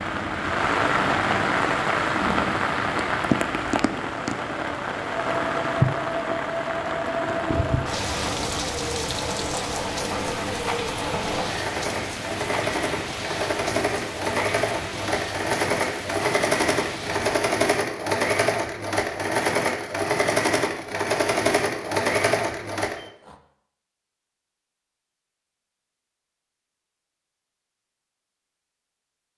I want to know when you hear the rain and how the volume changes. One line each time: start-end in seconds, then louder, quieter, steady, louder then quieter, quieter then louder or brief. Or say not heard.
0.0-17.4 quieter.